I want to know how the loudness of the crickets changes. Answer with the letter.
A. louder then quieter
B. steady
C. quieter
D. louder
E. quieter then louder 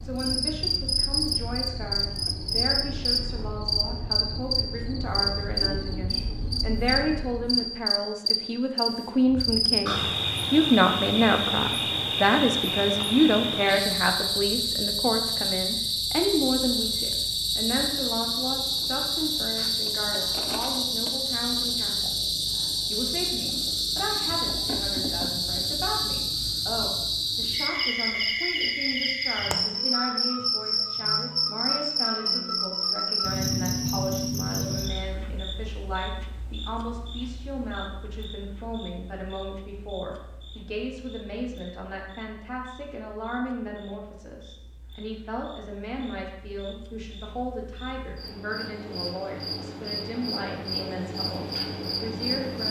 C.